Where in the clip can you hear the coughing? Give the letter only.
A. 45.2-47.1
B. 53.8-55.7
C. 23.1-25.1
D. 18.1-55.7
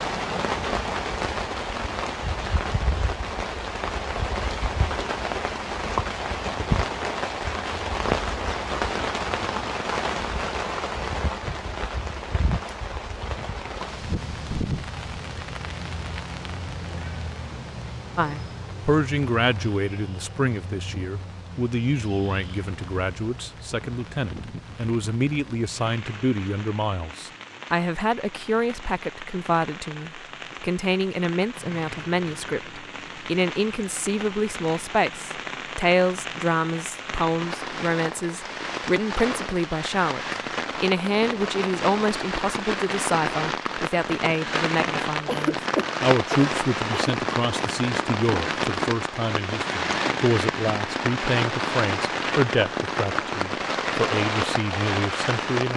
A.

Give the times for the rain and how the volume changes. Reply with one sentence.
You can hear the rain from 0.0 to 55.7 s, getting quieter then louder.